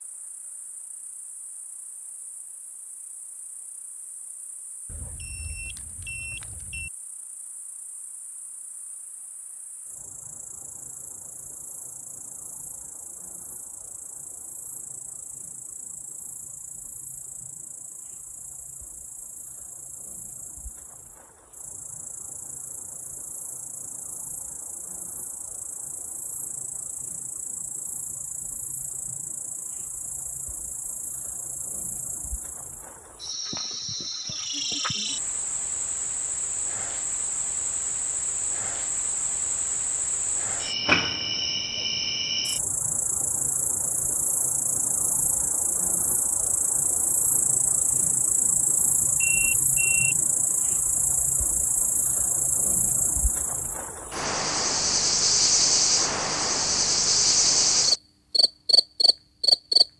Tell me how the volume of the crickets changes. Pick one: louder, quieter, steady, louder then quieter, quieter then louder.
louder.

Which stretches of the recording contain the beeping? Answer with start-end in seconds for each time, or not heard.
4.9-6.9, 49.2-50.1.